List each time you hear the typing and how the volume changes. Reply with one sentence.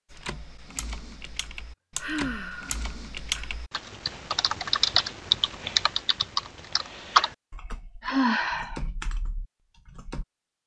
You can hear the typing from 0.1 to 10.2 s, getting louder then quieter.